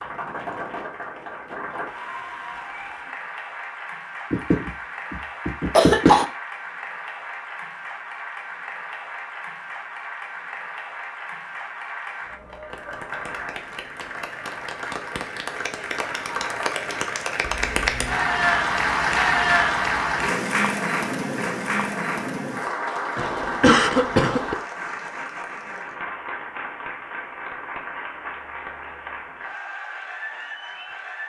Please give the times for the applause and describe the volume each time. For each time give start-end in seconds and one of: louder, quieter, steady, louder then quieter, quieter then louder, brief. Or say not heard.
0.0-31.2 louder then quieter.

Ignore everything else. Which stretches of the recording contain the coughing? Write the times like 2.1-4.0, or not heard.
4.3-6.2, 23.1-24.6.